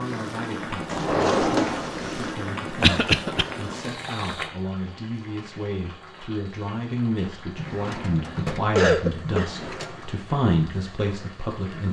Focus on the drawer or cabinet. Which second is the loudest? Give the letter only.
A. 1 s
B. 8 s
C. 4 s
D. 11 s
A.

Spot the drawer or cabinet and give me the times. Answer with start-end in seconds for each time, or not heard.
0.9-2.4, 7.5-10.1.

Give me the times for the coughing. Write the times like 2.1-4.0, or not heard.
2.8-3.5, 7.5-9.5.